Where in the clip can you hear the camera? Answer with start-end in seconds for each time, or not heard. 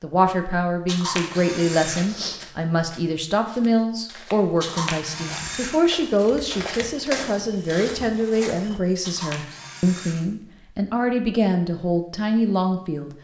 0.8-2.0, 4.6-5.8, 9.0-10.2.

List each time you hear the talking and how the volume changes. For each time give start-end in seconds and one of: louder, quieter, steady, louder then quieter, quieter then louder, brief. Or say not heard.
0.0-13.1 steady.